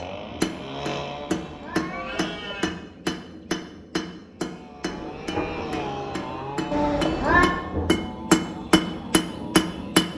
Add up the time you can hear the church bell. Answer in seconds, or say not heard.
not heard.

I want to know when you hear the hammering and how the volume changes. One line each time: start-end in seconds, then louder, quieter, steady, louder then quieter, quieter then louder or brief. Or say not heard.
0.0-10.1 quieter then louder.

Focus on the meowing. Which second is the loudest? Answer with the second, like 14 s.
7 s.